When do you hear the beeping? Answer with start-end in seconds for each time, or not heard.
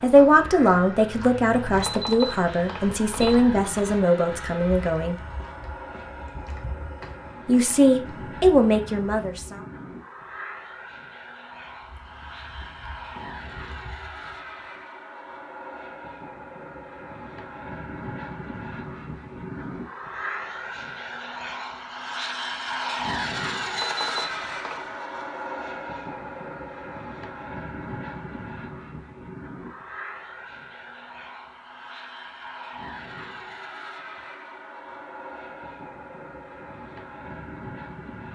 1.8-3.8, 23.8-24.9.